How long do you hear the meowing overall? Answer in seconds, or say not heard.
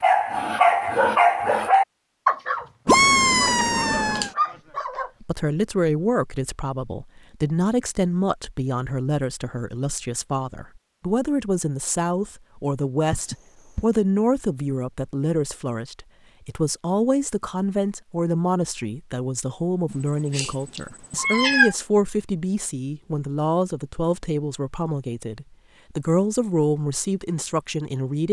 4 s.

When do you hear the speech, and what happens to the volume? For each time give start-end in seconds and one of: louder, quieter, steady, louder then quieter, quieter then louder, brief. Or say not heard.
5.2-28.2 steady.